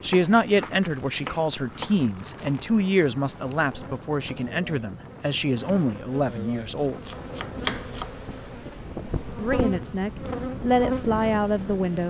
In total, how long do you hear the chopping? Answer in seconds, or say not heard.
4 s.